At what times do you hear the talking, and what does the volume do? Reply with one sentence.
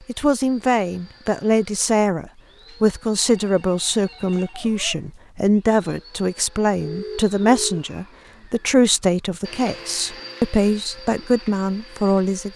You can hear the talking from 0.1 to 12.5 s, at a steady volume.